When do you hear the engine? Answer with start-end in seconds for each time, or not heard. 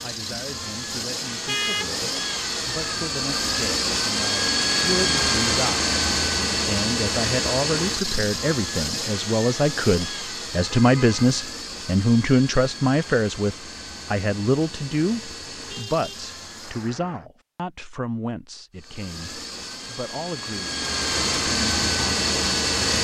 0.0-17.0, 18.8-22.9.